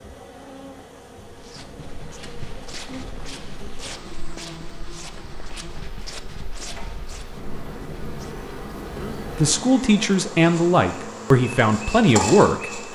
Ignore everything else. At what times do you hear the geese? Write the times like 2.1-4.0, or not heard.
1.6-3.5, 7.3-9.4.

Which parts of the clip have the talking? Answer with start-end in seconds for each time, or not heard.
9.0-12.8.